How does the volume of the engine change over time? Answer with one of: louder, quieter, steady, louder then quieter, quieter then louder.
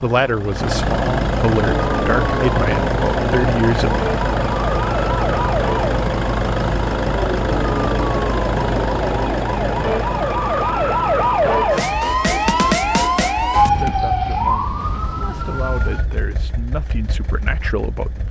quieter.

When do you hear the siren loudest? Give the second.
13 s.